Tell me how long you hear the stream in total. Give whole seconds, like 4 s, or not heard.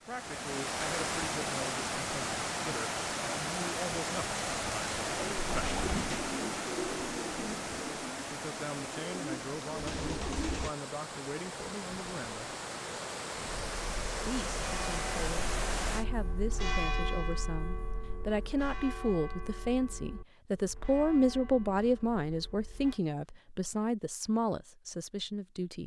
16 s.